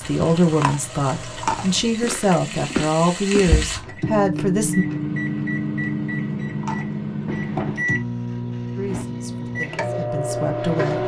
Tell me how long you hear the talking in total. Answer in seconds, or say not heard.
7 s.